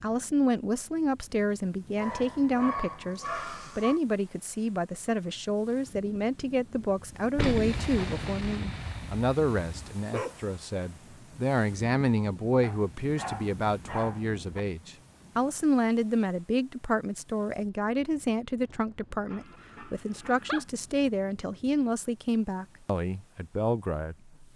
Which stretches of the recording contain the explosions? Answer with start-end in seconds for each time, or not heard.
7.3-9.9.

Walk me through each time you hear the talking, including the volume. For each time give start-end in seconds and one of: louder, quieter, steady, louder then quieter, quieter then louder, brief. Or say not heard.
0.0-24.5 steady.